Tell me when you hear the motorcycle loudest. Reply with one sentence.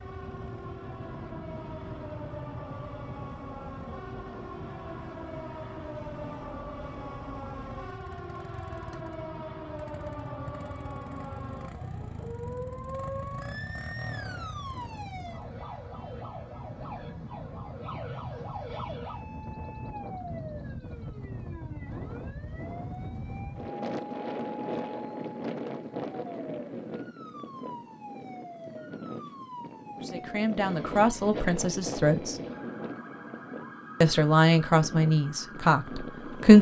The loudest moment of the motorcycle is at 14 seconds.